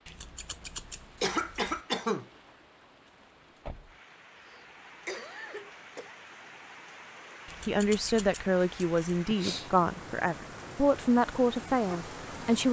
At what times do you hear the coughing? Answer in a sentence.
The coughing can be heard from 1.2 to 2.2 s, from 4.3 to 6.2 s and from 9.3 to 9.8 s.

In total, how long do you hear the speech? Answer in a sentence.
The speech can be heard for 5 seconds in total.